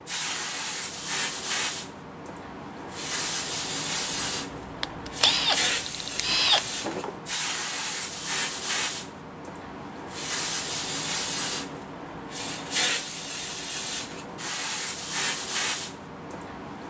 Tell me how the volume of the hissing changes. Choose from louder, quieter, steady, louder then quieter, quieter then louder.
steady.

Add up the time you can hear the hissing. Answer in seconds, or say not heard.
17 s.